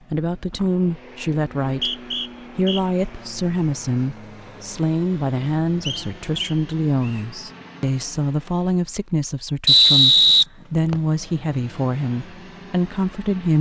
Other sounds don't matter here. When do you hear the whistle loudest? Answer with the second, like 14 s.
10 s.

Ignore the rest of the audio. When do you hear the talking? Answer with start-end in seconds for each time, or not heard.
0.1-13.5.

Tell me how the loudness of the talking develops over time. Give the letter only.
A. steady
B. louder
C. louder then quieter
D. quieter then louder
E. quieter
A.